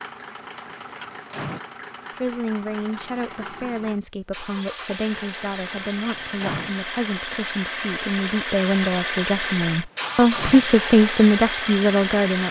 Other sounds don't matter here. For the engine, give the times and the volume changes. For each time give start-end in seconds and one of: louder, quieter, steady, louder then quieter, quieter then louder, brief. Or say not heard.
0.0-12.4 louder.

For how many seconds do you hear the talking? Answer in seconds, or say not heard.
10 s.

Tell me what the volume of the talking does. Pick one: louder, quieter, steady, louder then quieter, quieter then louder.
louder.